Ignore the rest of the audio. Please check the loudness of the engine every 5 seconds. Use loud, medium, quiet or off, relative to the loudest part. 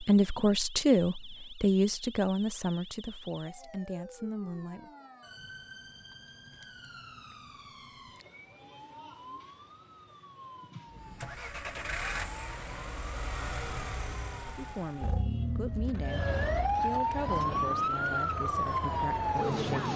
off, off, loud, loud.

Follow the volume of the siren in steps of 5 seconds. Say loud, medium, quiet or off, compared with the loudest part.
quiet, quiet, quiet, loud.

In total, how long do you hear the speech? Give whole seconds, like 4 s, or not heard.
10 s.